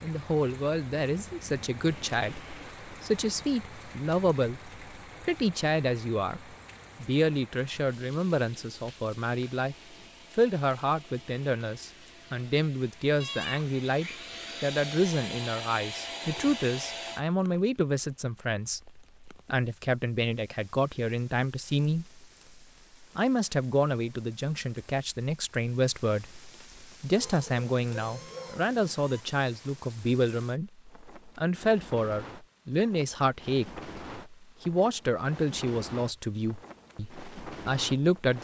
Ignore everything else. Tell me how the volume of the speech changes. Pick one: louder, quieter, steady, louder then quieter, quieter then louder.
steady.